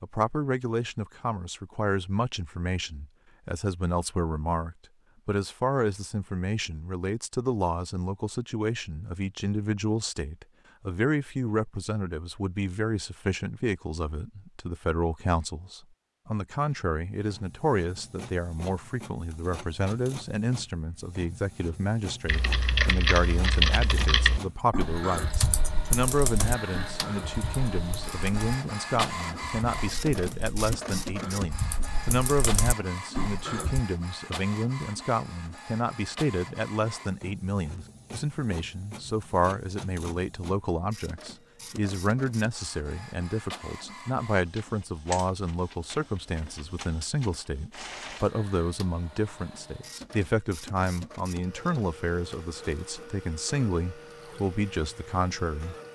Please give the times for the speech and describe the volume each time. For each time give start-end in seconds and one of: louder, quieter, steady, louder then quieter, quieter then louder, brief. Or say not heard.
0.0-55.8 steady.